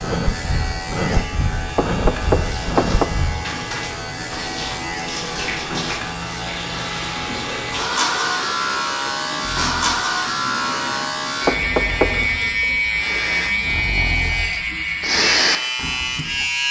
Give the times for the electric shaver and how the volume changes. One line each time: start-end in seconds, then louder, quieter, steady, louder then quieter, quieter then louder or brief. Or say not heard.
0.0-16.6 louder.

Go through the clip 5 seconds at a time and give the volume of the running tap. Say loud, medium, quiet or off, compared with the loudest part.
loud, loud, medium, off.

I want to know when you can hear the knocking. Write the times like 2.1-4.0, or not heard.
1.8-3.0, 11.4-12.3.